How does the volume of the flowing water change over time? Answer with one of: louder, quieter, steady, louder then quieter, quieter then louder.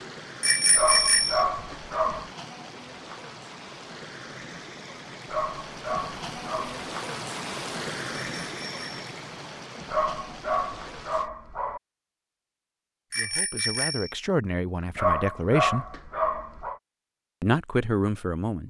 louder then quieter.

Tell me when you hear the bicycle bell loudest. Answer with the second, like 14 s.
1 s.